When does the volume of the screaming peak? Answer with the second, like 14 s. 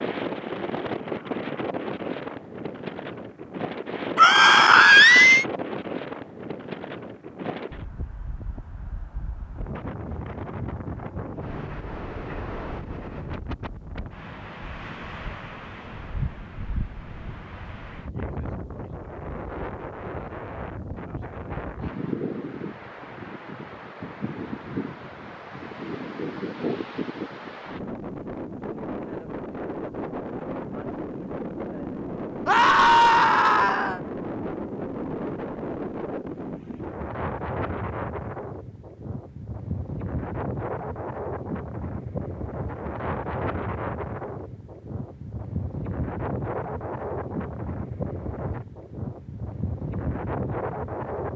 5 s.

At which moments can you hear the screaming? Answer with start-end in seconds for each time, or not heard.
4.2-5.5, 32.5-34.0.